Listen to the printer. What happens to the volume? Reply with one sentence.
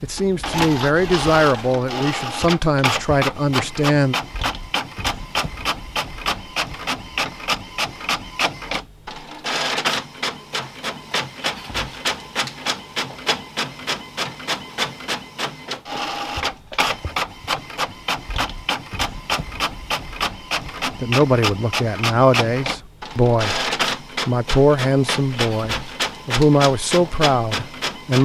The volume of the printer stays about the same.